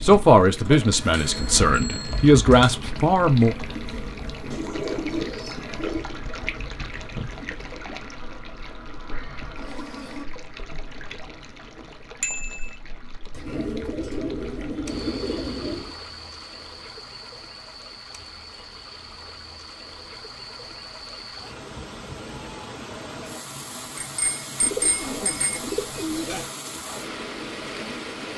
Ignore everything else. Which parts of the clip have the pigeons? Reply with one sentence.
You can hear the pigeons from 4.5 to 6.0 s, from 13.3 to 15.9 s and from 24.6 to 26.4 s.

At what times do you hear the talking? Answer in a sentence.
You can hear the talking from 0.0 to 3.5 s.